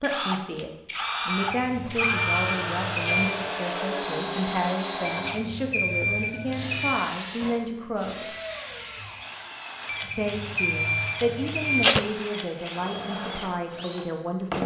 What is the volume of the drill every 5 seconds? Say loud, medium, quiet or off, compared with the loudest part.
loud, medium, medium.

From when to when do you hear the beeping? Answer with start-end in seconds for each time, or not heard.
1.3-3.2, 5.0-7.0, 9.8-11.8.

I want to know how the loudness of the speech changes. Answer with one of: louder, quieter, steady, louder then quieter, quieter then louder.
steady.